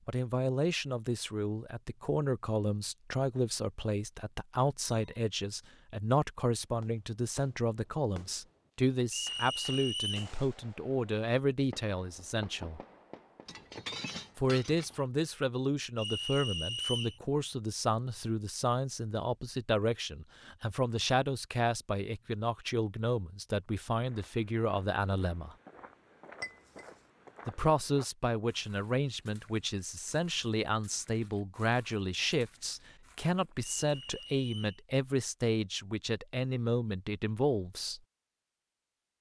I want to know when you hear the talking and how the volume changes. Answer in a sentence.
The talking can be heard from 0.1 to 12.8 s, at a steady volume; from 14.3 to 25.6 s, at a steady volume; and from 27.4 to 38.0 s, at a steady volume.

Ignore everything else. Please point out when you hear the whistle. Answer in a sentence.
You can hear the whistle from 9.1 to 10.3 s, from 15.9 to 17.2 s and from 33.6 to 34.8 s.